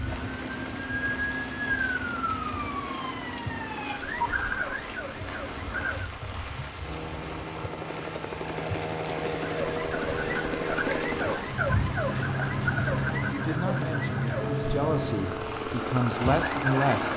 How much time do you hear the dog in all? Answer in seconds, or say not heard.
not heard.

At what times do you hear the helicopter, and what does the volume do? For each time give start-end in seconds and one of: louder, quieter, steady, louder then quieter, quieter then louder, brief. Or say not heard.
0.1-17.1 louder.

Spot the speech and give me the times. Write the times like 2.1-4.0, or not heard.
13.2-17.1.